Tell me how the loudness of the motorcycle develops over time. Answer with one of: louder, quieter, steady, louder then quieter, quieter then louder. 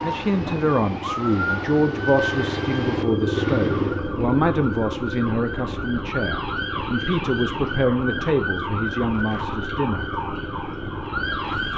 louder then quieter.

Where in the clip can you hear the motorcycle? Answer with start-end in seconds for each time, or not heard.
0.0-11.7.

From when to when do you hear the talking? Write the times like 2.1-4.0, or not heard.
0.0-10.1.